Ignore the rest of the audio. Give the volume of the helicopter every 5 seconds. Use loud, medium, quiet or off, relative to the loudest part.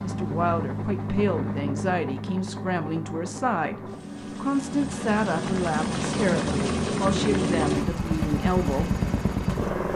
medium, loud.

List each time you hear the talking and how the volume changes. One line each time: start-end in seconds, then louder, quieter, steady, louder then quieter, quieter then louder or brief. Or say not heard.
0.0-9.0 steady.